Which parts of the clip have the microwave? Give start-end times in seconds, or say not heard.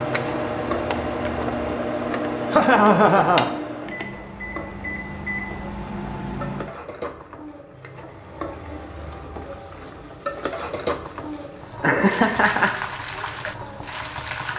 0.0-6.8.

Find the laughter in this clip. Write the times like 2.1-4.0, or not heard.
2.5-4.0, 11.8-12.8.